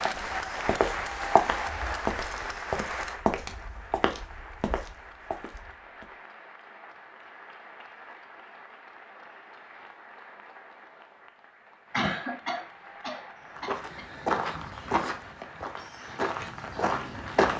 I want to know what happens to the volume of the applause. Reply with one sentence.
The volume of the applause goes down.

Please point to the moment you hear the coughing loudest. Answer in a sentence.
The volume of the coughing peaks at 12 seconds.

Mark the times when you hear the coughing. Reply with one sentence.
The coughing can be heard from 11.9 to 14.1 s.